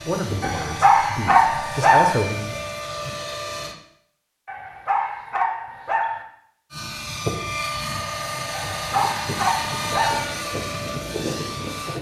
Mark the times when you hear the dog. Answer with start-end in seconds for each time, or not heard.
0.4-2.2, 4.5-6.2, 8.5-10.3.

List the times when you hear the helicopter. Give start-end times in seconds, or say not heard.
0.0-3.8, 6.7-11.9.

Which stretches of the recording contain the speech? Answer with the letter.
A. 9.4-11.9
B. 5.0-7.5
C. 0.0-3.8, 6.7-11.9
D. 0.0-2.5
D.